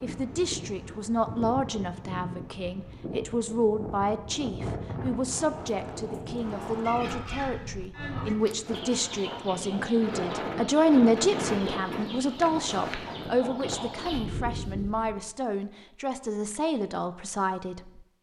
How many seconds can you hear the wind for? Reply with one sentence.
You can hear the wind for 15 seconds altogether.